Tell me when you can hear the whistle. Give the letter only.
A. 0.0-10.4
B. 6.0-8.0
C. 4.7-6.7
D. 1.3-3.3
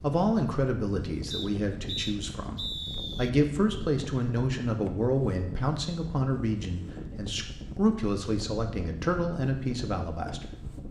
D.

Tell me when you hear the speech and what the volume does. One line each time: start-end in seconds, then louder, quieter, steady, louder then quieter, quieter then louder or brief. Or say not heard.
0.0-10.4 steady.